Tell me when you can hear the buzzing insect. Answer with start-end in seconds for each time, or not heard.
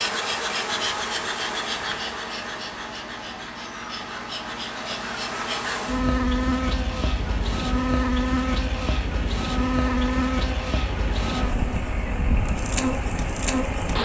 0.0-14.0.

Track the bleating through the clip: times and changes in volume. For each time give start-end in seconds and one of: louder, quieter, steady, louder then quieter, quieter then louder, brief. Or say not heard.
not heard.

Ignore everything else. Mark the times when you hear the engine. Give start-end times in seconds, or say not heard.
0.0-14.0.